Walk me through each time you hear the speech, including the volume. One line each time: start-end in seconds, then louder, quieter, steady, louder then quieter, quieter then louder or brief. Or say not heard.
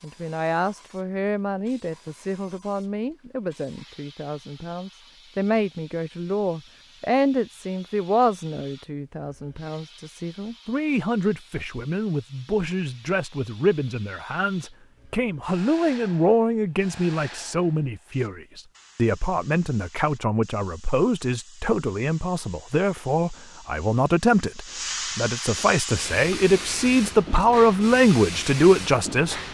0.0-29.4 louder.